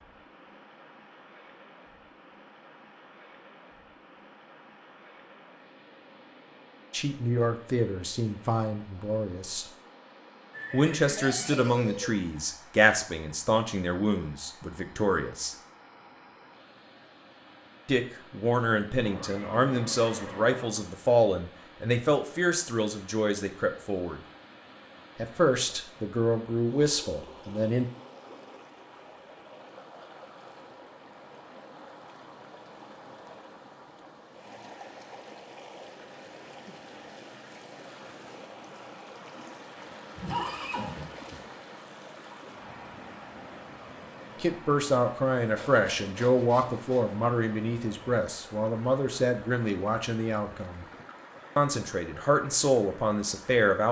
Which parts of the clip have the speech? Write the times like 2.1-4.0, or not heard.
6.9-9.7, 10.7-15.6, 17.9-24.2, 25.1-27.9, 44.4-50.9, 51.5-53.8.